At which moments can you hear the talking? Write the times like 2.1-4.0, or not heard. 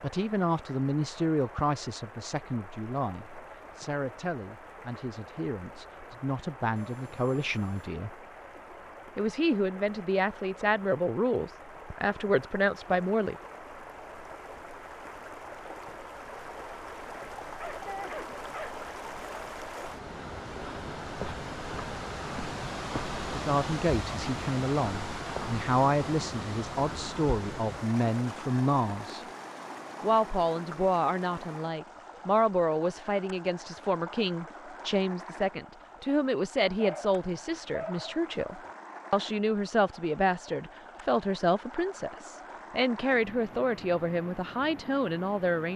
0.0-8.1, 9.2-13.3, 23.3-29.2, 30.0-45.7.